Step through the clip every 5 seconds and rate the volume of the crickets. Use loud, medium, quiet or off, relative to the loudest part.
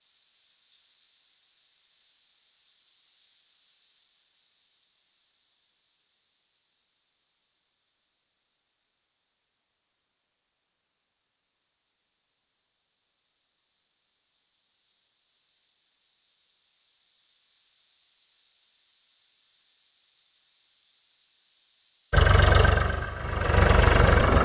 loud, medium, quiet, loud, loud.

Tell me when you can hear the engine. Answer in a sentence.
The engine can be heard from 22.1 to 24.4 s.